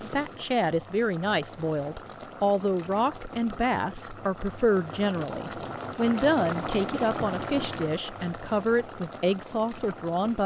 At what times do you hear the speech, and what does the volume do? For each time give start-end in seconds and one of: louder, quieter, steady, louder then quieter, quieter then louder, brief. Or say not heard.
0.0-10.4 steady.